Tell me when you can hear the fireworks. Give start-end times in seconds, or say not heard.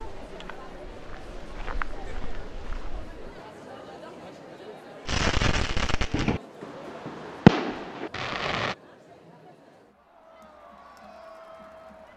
5.0-8.8.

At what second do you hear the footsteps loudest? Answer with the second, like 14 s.
2 s.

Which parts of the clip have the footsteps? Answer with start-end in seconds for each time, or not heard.
0.0-3.2.